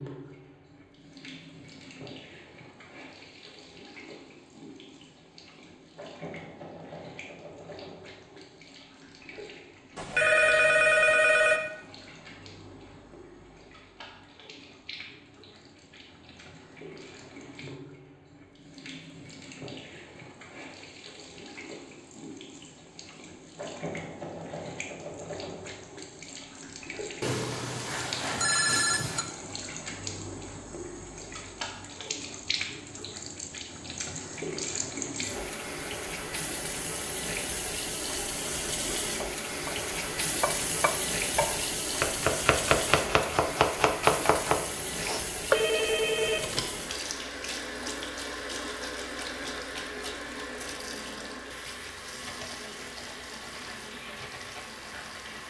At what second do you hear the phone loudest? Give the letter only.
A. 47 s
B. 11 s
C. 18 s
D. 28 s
B.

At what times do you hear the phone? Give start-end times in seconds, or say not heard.
9.9-11.6, 27.2-29.2, 45.5-46.6.